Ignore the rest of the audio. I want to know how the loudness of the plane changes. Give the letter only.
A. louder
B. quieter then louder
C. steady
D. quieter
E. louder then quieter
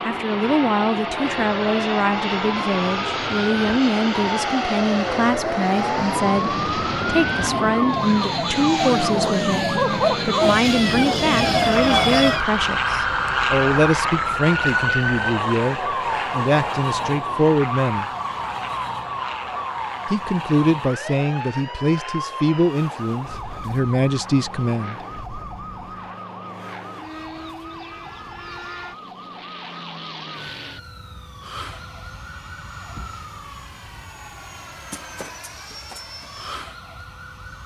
D.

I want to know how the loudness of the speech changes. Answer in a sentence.
The volume of the speech stays about the same.